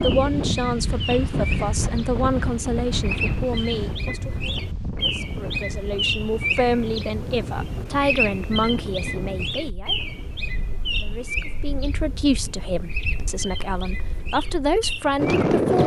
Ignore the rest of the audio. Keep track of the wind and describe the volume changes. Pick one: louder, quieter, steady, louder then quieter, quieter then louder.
quieter then louder.